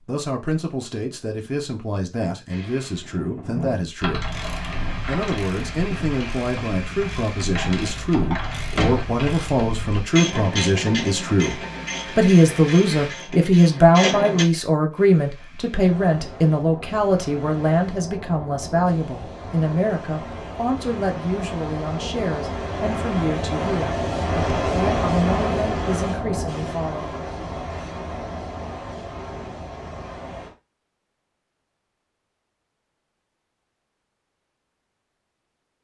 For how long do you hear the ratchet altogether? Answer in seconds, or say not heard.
12 s.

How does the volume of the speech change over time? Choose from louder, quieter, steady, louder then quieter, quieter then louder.
louder then quieter.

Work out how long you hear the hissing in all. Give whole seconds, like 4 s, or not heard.
24 s.